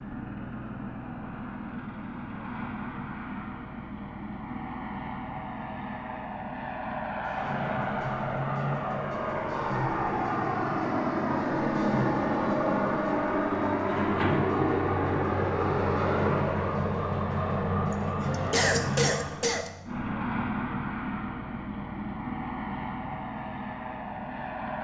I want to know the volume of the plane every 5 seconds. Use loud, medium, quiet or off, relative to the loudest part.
medium, medium, loud, loud, medium.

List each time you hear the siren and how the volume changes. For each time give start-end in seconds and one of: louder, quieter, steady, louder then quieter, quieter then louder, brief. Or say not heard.
7.2-19.6 steady.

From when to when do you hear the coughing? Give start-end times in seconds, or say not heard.
17.9-19.7.